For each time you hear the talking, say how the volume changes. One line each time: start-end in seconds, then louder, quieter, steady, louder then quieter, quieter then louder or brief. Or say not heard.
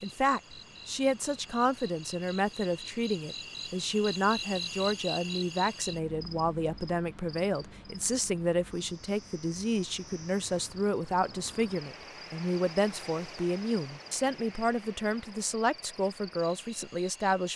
0.0-17.5 steady.